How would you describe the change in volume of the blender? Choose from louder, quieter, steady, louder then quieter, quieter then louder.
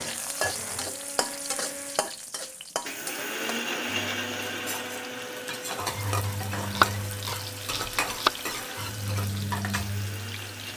louder then quieter.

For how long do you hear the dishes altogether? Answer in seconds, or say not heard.
not heard.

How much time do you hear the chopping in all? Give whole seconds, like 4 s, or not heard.
2 s.